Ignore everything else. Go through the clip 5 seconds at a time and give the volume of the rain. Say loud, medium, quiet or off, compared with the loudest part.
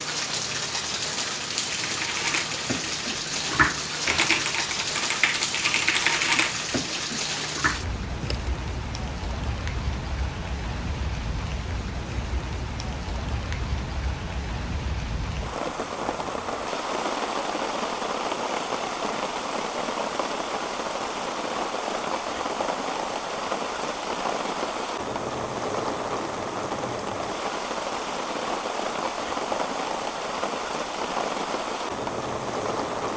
loud, loud, medium, loud, loud, loud, loud.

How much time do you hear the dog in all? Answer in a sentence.
The dog can't be heard in this clip.